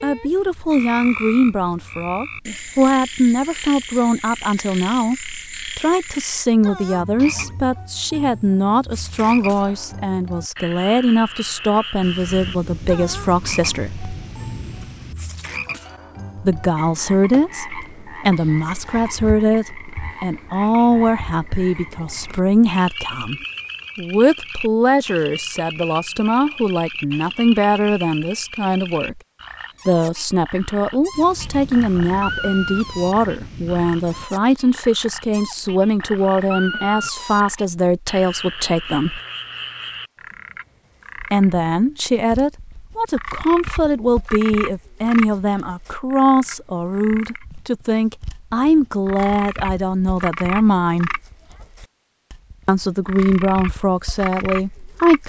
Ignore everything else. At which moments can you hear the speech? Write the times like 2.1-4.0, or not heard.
0.0-14.1, 16.4-29.2, 29.9-39.2, 41.3-51.2, 52.6-55.2.